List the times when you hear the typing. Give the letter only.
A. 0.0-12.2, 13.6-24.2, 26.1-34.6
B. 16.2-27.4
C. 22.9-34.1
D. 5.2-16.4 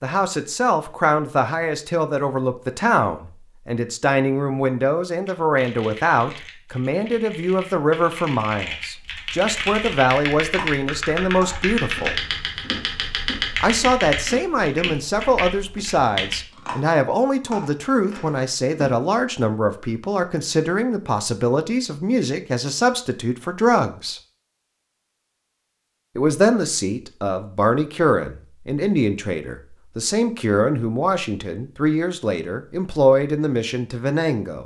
D.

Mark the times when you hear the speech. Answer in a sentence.
You can hear the speech from 0.0 to 12.2 s, from 13.6 to 24.2 s and from 26.1 to 34.6 s.